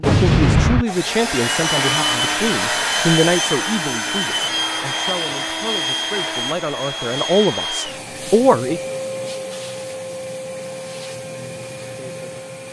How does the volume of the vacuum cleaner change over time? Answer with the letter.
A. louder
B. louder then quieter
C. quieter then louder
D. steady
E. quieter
E.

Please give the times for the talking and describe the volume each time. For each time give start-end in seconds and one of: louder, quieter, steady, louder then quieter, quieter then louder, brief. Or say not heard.
0.0-8.8 quieter then louder.